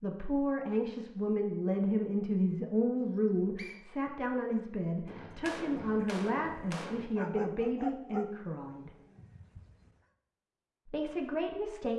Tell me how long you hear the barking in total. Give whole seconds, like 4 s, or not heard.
3 s.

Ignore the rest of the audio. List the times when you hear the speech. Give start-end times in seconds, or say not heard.
0.0-8.9, 10.8-11.9.